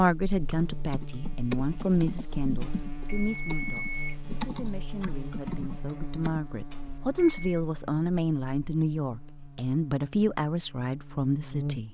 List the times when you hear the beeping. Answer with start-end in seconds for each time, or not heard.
2.6-4.2, 6.7-7.6.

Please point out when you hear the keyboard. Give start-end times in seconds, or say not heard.
0.4-6.4.